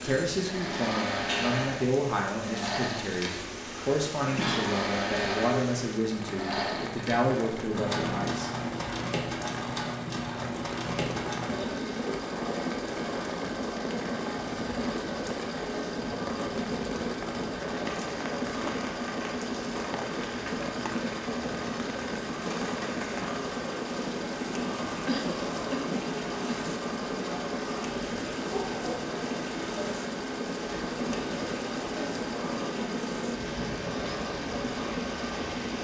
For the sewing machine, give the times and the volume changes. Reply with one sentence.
The sewing machine can be heard from 0.0 to 35.7 s, at a steady volume.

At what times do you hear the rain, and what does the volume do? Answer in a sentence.
You can hear the rain from 0.0 to 35.7 s, at a steady volume.